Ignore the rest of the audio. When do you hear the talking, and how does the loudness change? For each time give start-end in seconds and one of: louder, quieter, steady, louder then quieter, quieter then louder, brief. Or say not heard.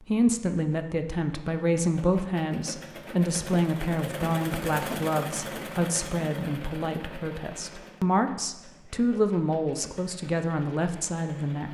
0.0-11.6 steady.